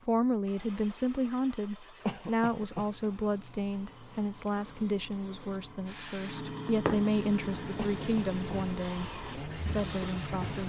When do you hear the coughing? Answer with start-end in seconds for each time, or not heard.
2.0-2.9, 7.8-8.7.